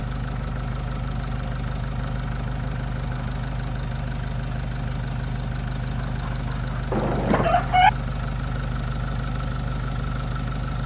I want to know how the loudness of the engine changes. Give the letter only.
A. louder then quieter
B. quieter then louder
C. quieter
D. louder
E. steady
E.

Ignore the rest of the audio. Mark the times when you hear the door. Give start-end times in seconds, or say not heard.
6.9-7.8.